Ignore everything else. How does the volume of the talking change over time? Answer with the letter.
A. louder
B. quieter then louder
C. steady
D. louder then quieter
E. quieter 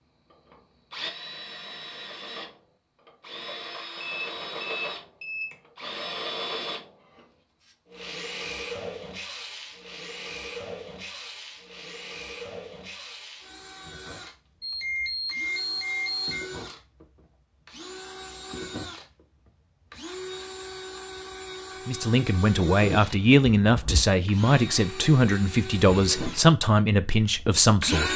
C.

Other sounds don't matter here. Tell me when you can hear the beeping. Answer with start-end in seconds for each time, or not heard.
4.0-5.5, 14.6-16.4, 23.1-24.1.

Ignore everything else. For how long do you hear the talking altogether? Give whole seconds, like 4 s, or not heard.
6 s.